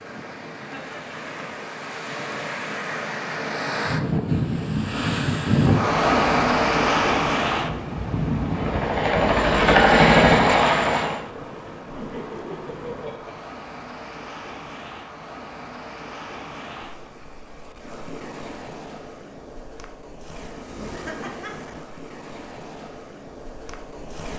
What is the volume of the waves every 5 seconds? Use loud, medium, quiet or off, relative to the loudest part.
medium, loud, quiet, quiet, quiet.